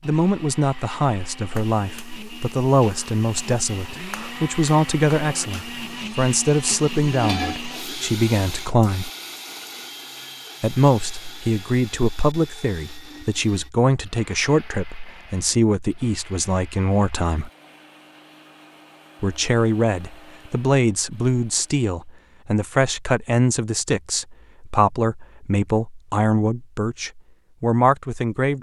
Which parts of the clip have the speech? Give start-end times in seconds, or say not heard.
0.0-9.1, 10.6-17.5, 19.2-28.5.